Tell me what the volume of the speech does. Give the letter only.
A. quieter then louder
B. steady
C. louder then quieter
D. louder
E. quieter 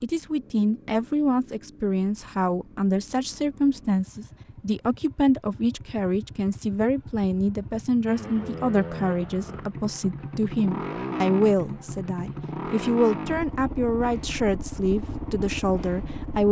B.